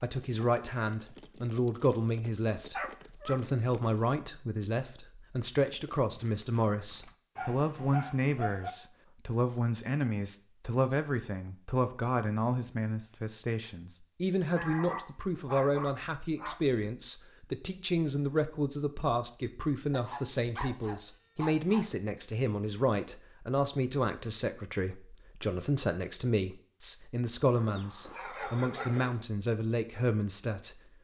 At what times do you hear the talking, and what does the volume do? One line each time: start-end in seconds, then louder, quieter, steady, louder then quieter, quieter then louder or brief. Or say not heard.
0.0-30.8 steady.